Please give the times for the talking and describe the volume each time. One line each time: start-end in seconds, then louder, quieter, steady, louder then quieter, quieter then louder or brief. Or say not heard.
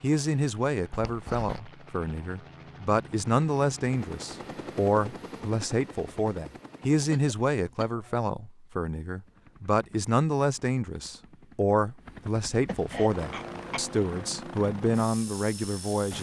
0.0-16.1 steady.